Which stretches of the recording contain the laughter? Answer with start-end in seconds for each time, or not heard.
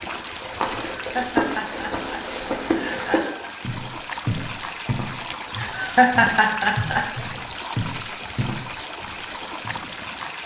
0.8-3.5, 5.5-7.0.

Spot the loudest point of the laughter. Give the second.
6 s.